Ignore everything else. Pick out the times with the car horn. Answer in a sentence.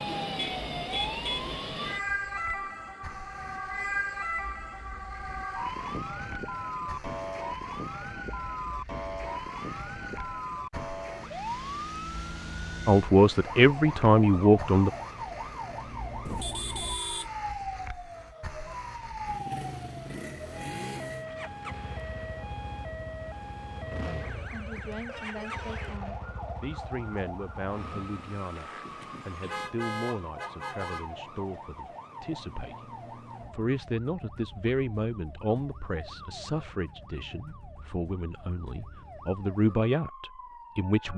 The car horn can be heard from 0.3 to 1.5 s, from 16.2 to 17.2 s and from 29.4 to 31.1 s.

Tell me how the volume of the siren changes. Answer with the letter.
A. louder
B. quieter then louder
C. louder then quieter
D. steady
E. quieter
E.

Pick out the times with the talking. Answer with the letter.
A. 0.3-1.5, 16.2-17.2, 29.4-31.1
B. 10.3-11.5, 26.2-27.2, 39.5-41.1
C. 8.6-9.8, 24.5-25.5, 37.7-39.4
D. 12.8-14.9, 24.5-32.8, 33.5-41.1
D.